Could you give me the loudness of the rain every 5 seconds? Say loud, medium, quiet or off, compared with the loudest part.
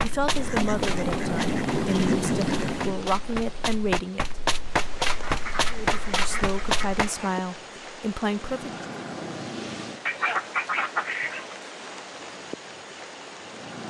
loud, medium, medium.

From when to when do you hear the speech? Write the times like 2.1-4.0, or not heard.
0.0-4.2, 5.7-8.8.